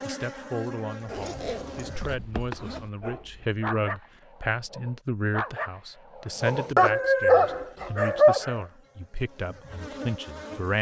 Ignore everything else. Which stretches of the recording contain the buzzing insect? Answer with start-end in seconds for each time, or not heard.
0.0-2.2, 7.3-10.7.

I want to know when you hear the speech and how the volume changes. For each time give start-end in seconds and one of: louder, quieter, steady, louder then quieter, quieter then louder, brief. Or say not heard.
0.1-10.7 steady.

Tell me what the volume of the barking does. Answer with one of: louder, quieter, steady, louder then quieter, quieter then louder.
louder.